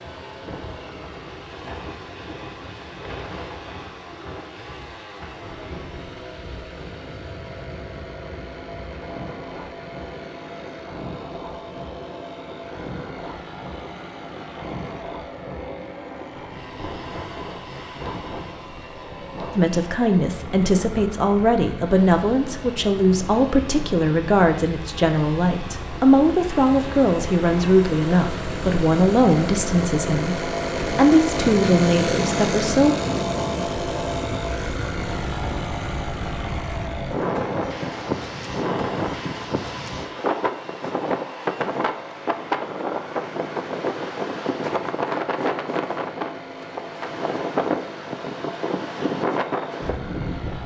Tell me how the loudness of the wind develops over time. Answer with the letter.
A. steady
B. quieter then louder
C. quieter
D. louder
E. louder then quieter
D.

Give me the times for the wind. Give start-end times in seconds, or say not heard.
0.1-50.6.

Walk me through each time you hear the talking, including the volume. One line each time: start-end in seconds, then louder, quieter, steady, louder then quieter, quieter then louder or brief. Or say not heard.
19.6-33.0 steady.